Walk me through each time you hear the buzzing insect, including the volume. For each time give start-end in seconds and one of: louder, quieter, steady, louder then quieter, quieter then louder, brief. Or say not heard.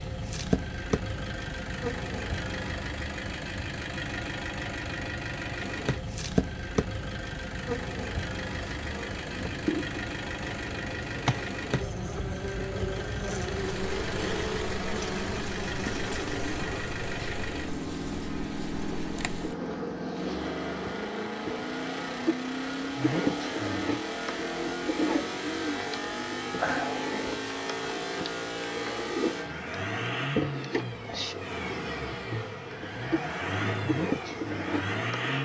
0.0-2.5 brief
5.5-35.3 steady.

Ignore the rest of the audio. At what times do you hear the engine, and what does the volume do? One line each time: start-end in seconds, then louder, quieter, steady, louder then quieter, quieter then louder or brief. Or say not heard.
0.0-35.3 steady.